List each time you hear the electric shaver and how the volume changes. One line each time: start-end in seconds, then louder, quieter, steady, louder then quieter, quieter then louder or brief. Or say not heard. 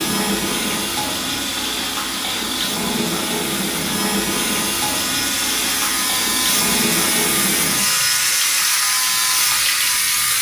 0.0-10.3 louder.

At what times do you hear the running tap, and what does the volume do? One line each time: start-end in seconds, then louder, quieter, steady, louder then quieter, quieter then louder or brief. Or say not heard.
0.0-10.3 steady.